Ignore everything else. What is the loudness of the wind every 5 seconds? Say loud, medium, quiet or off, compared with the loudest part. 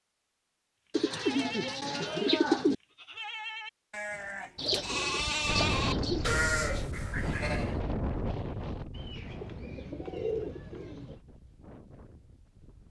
off, loud, quiet.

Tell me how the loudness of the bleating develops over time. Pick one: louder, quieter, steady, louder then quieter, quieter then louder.
louder.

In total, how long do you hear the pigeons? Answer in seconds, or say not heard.
6 s.